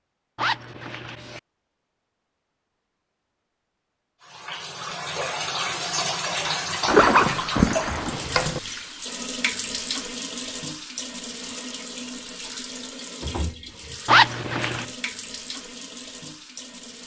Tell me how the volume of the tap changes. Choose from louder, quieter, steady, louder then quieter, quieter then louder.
quieter.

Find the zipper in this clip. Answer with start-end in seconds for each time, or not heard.
0.3-1.4, 6.8-8.6, 14.1-14.8.